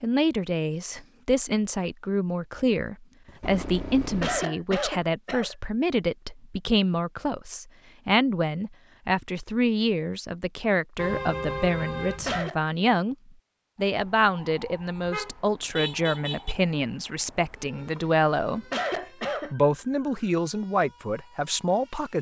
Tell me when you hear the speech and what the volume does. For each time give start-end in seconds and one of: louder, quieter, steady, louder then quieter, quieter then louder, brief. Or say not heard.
0.0-13.2 steady
13.8-22.1 steady.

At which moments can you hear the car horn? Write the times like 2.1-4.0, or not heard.
3.4-4.5, 10.9-12.5, 15.0-16.6.